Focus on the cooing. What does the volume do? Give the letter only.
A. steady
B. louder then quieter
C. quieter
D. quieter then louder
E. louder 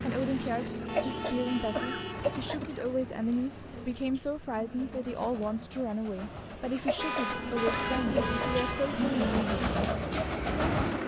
E.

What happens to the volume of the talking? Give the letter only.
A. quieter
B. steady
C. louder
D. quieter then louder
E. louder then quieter
B.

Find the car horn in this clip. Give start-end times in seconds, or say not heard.
0.8-2.5, 7.0-8.9.